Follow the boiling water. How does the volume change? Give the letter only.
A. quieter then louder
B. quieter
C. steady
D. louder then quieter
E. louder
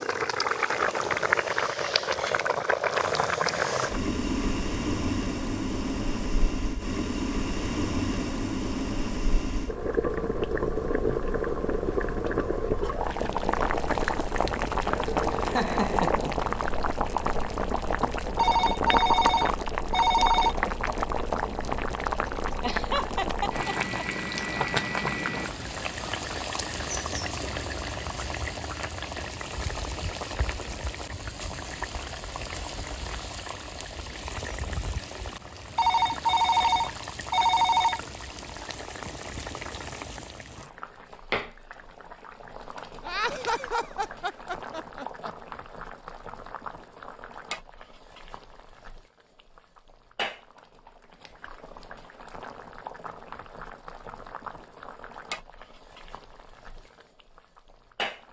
B.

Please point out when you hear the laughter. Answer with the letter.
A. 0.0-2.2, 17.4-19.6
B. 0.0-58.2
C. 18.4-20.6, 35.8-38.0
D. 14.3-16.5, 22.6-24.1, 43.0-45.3
D.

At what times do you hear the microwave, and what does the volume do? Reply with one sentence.
The microwave can't be heard in this clip.